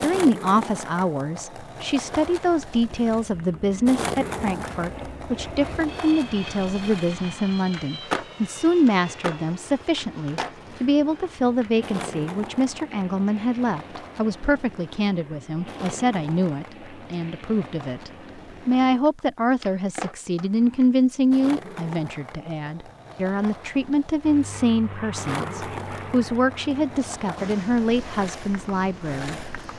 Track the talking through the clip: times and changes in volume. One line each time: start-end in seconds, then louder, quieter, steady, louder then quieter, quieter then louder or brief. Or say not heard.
0.0-29.4 steady.